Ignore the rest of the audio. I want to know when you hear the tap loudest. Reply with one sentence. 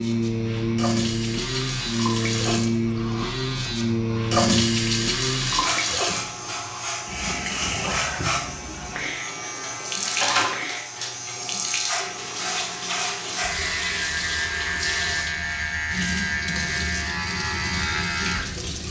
The loudest moment of the tap is at 5 seconds.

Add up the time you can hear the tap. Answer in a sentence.
The tap can be heard for 19 seconds in total.